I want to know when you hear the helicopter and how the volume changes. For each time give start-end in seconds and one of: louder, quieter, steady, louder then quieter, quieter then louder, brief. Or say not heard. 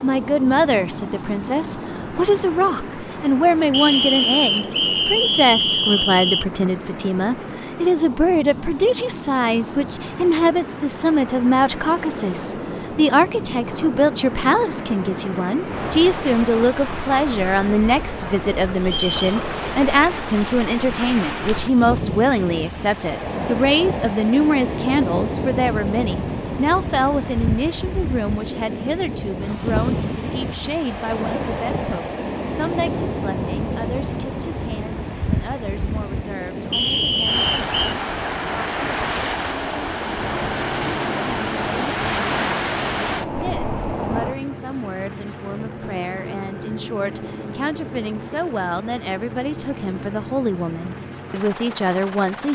40.1-52.5 steady.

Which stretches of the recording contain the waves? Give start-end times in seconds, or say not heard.
0.0-44.4.